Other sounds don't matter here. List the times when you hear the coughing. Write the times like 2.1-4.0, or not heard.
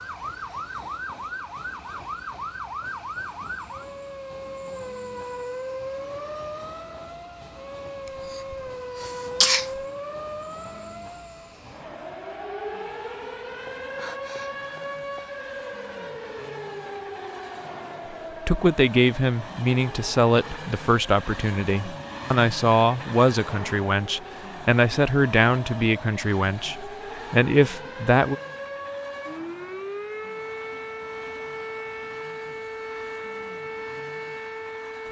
8.3-9.8.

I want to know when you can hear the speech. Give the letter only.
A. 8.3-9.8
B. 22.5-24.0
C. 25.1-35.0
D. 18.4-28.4
D.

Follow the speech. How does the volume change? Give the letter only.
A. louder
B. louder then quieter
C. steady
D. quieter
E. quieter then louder
C.